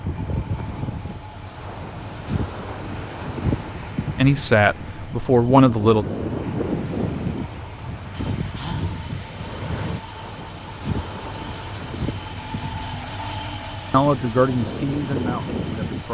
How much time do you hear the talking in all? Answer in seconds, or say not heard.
4 s.